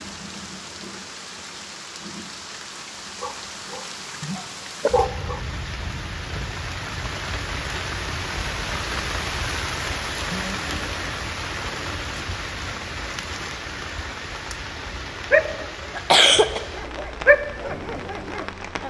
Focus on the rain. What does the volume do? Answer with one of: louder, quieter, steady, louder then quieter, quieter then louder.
louder then quieter.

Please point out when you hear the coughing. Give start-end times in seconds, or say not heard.
15.9-16.6.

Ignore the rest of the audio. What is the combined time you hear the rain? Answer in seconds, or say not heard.
19 s.